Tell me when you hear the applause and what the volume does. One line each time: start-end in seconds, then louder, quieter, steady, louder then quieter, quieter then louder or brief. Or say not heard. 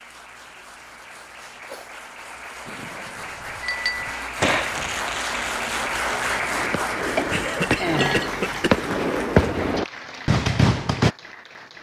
0.0-11.7 louder then quieter.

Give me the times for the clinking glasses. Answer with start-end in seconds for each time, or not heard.
3.6-4.1, 7.2-8.8.